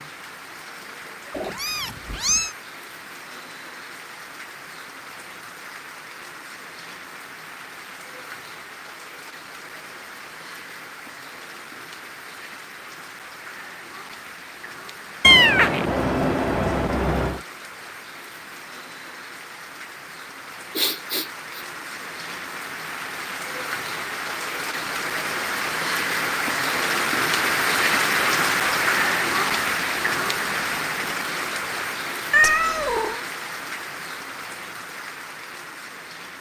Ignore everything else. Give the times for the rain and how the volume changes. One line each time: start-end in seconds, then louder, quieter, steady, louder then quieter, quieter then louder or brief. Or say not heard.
0.0-36.3 louder.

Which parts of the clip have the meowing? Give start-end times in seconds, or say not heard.
1.3-2.5, 15.2-17.4, 32.3-33.2.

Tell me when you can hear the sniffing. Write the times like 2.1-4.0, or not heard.
20.8-21.6.